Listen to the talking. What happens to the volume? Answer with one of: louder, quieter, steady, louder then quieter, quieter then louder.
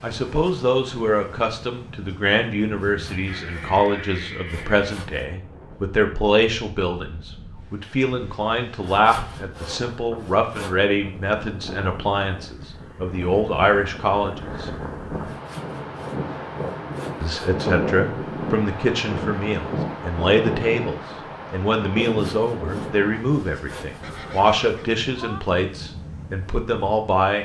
steady.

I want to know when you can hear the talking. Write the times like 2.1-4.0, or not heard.
0.0-14.7, 17.2-27.4.